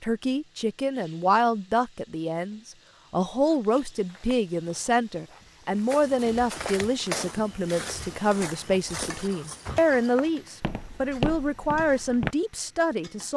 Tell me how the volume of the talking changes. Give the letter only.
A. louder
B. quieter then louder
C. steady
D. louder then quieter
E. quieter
C.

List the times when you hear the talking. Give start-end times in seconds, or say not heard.
0.0-13.3.